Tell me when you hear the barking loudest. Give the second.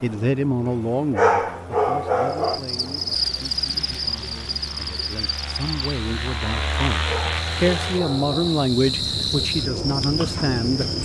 1 s.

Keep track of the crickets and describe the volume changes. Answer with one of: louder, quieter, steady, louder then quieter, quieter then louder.
quieter then louder.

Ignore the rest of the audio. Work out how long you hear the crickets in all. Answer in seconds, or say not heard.
9 s.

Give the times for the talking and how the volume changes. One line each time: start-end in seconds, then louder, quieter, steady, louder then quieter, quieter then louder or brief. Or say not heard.
0.0-10.9 quieter then louder.